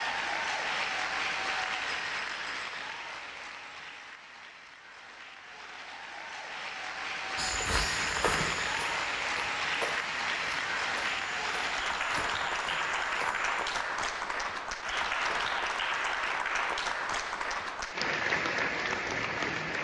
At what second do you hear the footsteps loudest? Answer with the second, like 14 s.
8 s.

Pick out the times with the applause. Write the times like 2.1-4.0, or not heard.
0.0-19.7.